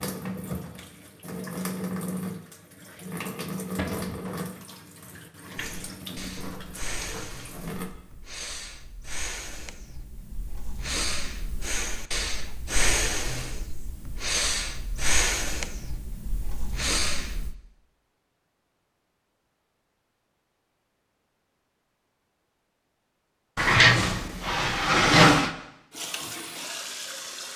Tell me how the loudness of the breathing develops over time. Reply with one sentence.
The loudness of the breathing goes up.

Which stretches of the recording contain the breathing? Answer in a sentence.
The breathing can be heard from 5.5 to 17.6 s.